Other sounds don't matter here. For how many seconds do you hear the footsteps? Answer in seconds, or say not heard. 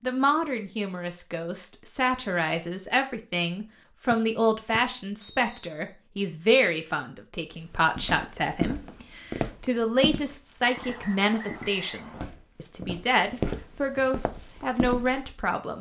8 s.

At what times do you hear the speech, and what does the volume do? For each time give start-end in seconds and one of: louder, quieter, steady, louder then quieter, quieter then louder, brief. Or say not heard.
0.0-15.7 steady.